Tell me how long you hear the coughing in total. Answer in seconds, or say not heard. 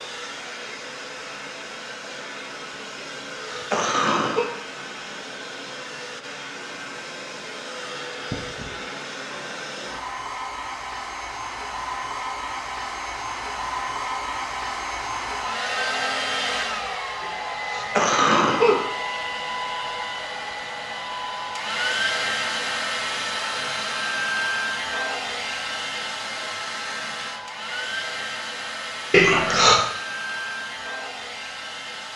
4 s.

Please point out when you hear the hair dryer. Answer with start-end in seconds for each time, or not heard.
0.0-32.1.